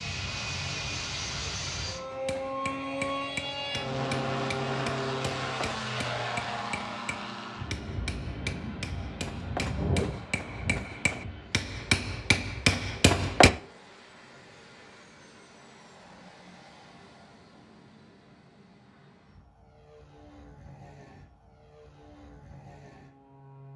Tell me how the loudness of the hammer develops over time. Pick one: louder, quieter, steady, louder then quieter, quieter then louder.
louder.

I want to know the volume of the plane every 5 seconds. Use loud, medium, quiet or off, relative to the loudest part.
loud, loud, medium, quiet, quiet.